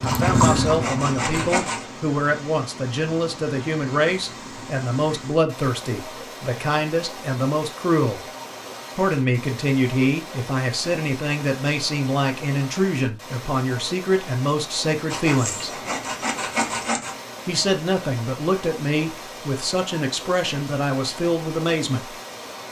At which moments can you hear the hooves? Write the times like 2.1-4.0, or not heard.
0.0-1.6.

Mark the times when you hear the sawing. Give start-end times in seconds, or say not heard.
0.1-1.9, 15.1-17.1.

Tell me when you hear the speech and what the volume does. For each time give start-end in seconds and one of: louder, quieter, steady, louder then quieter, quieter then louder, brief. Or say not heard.
0.0-8.2 steady
8.9-15.7 steady
17.4-22.1 steady.